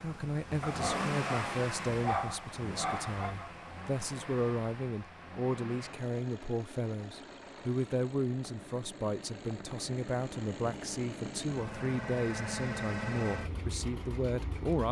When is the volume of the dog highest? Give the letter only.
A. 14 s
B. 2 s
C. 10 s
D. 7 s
B.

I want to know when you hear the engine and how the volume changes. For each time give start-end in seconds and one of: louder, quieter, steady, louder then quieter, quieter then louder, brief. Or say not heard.
0.0-14.8 quieter then louder.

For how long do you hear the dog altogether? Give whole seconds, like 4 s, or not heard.
3 s.